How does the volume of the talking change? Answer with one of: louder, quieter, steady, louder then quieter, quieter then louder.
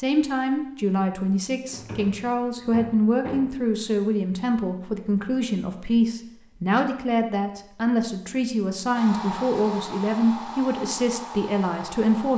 steady.